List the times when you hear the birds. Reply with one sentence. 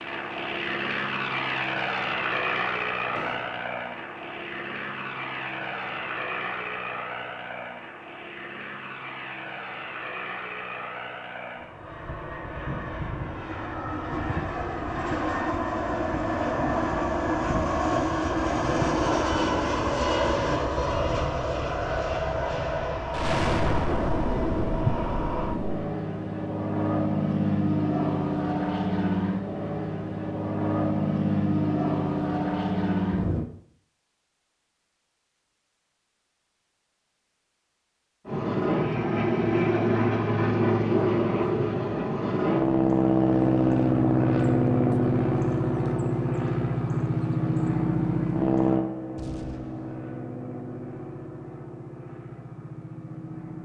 The birds can't be heard in this clip.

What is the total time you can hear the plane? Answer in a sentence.
You can hear the plane for 49 seconds altogether.